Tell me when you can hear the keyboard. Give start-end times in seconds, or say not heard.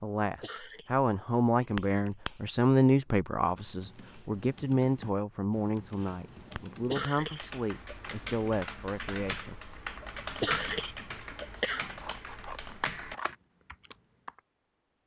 3.6-14.4.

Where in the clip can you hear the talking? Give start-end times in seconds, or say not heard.
0.0-9.6.